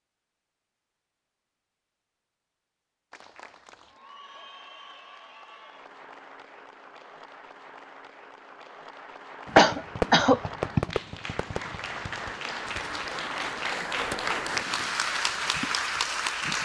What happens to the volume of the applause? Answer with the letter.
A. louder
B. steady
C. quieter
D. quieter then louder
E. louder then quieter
A.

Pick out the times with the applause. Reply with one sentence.
You can hear the applause from 3.1 to 16.6 s.